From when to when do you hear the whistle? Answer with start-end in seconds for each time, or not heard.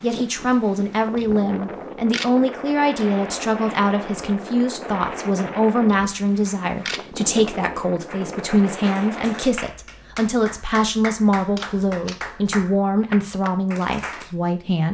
not heard.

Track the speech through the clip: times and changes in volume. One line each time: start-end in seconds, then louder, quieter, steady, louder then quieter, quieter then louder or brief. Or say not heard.
0.0-14.9 steady.